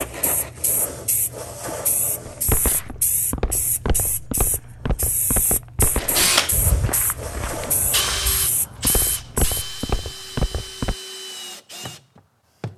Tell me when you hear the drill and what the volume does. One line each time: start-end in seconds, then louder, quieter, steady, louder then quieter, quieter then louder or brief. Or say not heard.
6.2-12.7 louder then quieter.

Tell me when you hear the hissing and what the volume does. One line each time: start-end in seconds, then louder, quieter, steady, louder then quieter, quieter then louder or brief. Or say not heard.
0.0-9.6 steady.